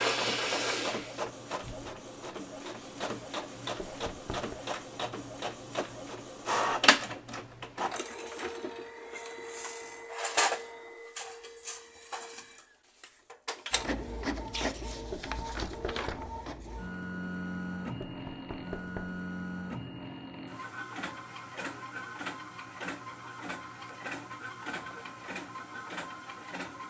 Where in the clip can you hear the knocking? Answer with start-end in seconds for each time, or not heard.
3.8-4.6, 15.1-16.3, 18.0-19.2.